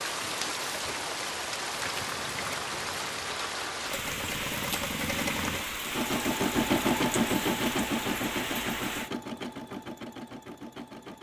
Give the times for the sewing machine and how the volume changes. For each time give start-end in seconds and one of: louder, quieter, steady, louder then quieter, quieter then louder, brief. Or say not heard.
0.0-11.1 louder then quieter.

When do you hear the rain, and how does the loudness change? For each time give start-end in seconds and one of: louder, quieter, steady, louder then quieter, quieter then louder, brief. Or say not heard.
0.0-9.1 steady.